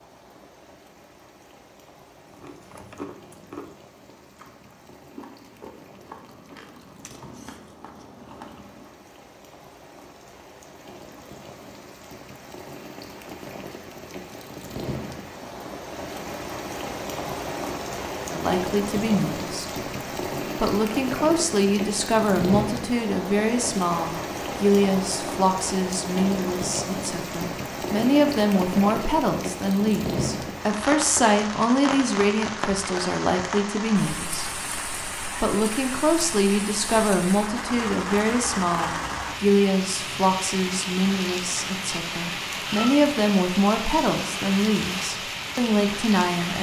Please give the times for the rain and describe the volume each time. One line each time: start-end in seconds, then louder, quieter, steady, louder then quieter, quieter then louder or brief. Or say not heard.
0.0-46.5 louder.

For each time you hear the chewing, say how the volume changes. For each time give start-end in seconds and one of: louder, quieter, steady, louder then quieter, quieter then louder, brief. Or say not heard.
2.2-9.0 quieter then louder.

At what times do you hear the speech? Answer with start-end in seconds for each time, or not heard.
18.2-19.8, 20.6-34.6, 35.4-46.5.